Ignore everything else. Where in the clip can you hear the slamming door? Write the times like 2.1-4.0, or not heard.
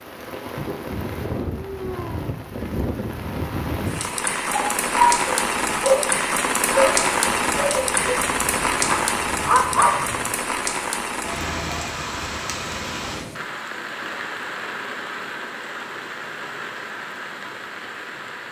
not heard.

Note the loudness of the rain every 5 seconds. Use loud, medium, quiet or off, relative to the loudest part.
medium, loud, medium, medium.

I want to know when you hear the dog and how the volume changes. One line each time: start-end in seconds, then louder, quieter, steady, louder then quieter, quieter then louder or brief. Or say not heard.
4.5-10.3 quieter then louder.